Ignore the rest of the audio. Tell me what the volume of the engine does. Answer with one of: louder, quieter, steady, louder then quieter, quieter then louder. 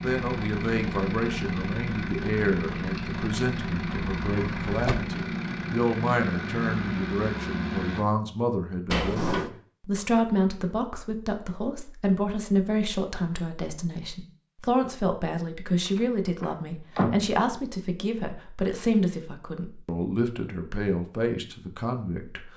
steady.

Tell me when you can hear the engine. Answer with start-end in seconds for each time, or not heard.
0.0-8.1.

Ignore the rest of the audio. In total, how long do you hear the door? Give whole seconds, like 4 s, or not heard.
3 s.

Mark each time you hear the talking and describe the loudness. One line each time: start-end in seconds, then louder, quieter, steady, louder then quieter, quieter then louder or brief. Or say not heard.
0.0-22.5 steady.